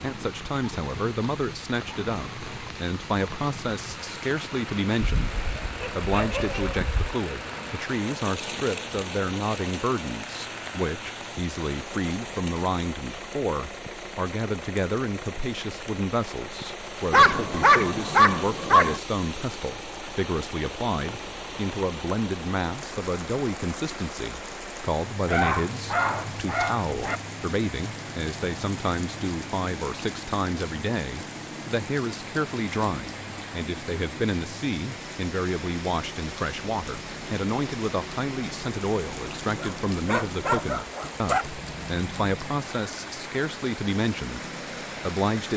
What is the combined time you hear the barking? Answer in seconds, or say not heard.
8 s.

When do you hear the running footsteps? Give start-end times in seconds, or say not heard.
not heard.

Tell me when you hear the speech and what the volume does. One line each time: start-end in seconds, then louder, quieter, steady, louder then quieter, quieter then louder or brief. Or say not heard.
0.0-44.5 steady
45.0-45.5 brief.